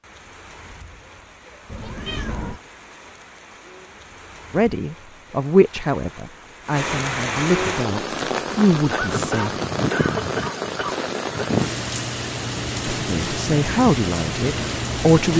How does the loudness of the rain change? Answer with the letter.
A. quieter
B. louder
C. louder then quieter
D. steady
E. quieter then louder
B.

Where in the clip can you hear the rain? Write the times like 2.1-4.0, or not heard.
0.0-15.3.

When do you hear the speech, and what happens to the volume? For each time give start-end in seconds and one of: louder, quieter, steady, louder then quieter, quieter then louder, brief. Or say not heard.
4.5-9.5 quieter then louder
12.9-15.3 brief.